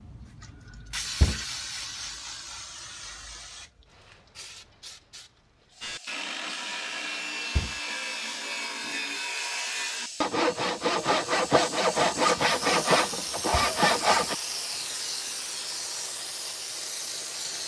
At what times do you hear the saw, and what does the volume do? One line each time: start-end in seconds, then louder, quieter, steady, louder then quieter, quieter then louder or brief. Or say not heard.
5.8-14.3 louder.